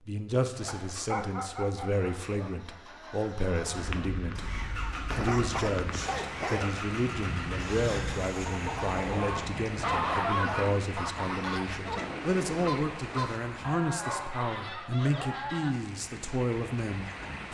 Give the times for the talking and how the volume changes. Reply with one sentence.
The talking can be heard from 0.1 to 17.4 s, at a steady volume.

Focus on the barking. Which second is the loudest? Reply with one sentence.
The loudest moment of the barking is at 10 seconds.